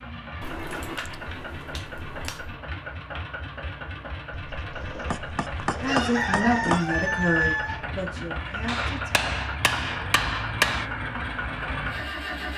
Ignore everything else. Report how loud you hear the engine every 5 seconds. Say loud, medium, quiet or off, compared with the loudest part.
medium, loud, loud.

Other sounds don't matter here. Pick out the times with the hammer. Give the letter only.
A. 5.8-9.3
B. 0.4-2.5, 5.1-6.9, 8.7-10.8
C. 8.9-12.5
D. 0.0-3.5
B.